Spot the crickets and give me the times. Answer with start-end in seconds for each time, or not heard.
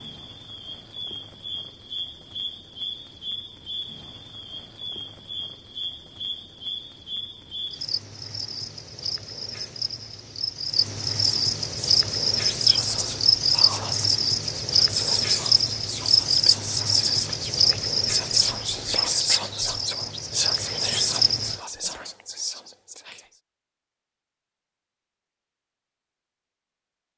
0.0-21.6.